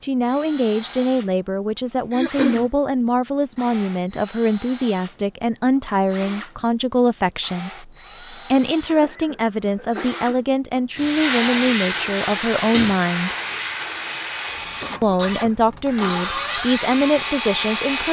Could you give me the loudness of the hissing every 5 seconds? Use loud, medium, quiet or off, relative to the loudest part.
off, off, loud, quiet.